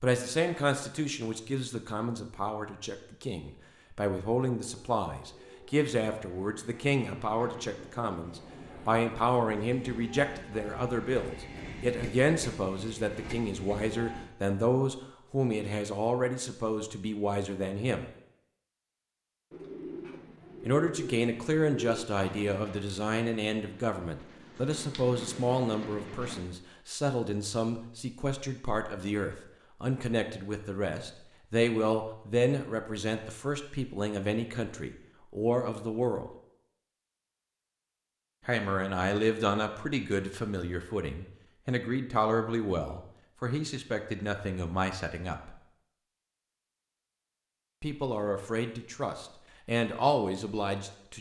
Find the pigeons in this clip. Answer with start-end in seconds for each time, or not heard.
19.5-22.1.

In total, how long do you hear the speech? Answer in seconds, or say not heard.
44 s.